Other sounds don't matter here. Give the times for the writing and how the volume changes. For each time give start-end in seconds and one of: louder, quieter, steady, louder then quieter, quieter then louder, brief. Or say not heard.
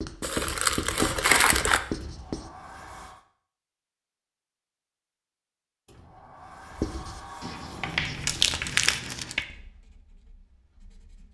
0.0-2.5 brief
6.7-11.3 louder then quieter.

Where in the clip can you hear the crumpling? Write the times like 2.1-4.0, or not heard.
0.2-1.8, 8.1-9.3.